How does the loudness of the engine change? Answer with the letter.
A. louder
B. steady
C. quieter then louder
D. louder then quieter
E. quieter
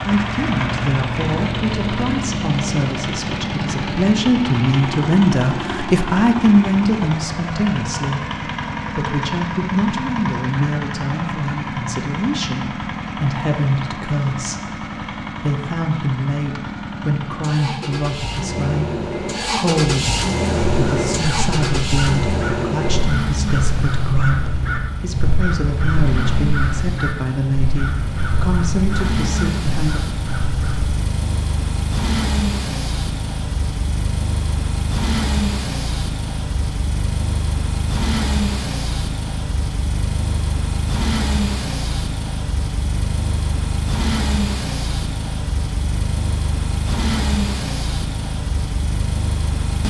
B.